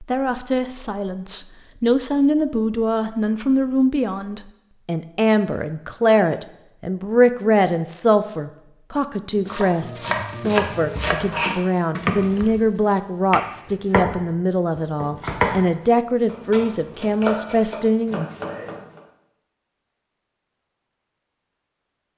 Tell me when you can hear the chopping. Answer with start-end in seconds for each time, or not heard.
9.3-14.2, 14.8-19.0.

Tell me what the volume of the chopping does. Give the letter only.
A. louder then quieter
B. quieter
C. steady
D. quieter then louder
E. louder
B.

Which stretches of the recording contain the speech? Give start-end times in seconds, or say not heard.
0.0-18.2.